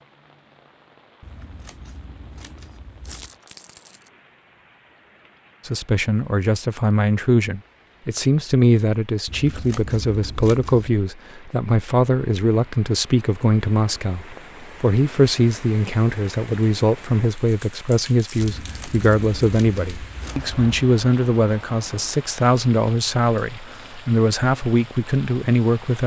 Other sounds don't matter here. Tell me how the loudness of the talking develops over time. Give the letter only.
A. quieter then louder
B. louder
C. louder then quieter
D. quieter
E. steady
E.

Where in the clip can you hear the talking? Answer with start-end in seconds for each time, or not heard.
5.7-26.0.